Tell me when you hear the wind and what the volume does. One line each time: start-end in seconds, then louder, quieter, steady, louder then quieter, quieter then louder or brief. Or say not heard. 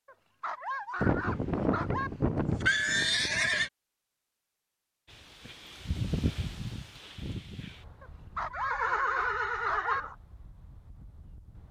5.0-11.6 quieter.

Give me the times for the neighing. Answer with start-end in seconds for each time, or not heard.
1.0-3.7, 8.5-10.2.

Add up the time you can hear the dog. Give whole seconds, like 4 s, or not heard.
4 s.